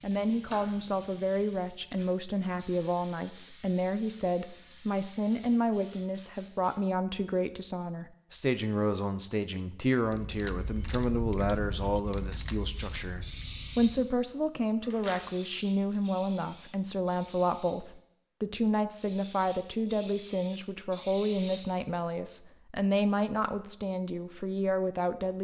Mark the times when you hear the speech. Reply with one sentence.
You can hear the speech from 0.0 to 25.3 s.